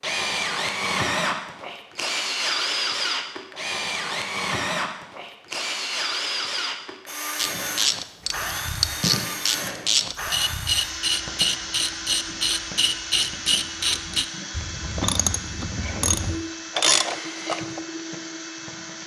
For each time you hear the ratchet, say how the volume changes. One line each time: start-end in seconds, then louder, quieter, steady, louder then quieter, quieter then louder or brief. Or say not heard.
7.3-17.8 steady.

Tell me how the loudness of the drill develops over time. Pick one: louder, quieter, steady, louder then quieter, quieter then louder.
quieter.